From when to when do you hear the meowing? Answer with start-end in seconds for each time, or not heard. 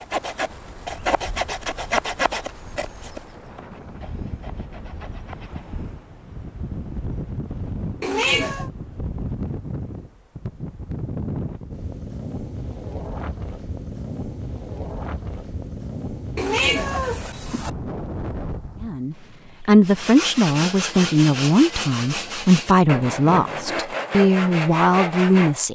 8.0-8.7, 16.4-17.7.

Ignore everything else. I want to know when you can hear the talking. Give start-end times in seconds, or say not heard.
18.8-25.6.